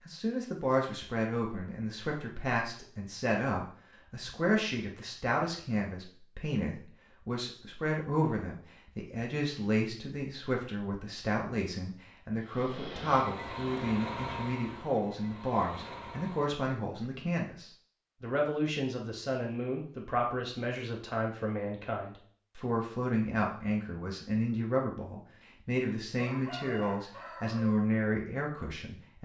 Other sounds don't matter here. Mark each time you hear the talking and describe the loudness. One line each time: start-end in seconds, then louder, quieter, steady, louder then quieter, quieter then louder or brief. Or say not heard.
0.1-29.2 steady.